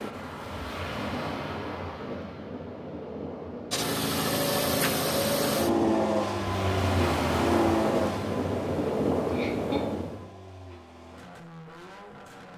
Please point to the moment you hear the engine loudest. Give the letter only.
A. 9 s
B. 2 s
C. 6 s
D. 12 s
C.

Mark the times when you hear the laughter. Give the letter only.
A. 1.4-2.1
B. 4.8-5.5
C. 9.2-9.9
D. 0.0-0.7
C.